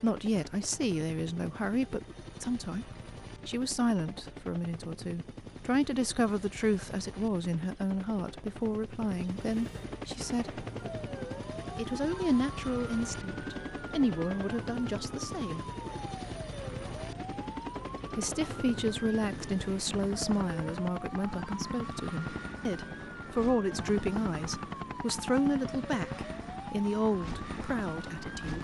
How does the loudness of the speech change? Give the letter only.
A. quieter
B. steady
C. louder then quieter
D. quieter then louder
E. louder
B.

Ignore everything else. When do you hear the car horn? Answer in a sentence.
The car horn can't be heard in this clip.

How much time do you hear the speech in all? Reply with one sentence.
You can hear the speech for 25 seconds altogether.